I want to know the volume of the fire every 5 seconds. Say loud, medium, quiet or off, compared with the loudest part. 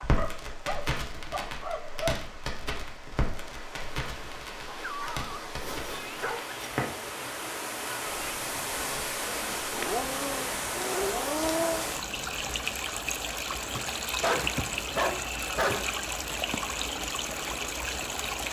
loud, loud, medium, off.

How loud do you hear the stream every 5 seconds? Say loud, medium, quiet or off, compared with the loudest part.
quiet, loud, loud, loud.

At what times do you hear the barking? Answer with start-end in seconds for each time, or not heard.
0.1-2.2, 4.7-6.5, 9.5-11.8, 14.1-15.8.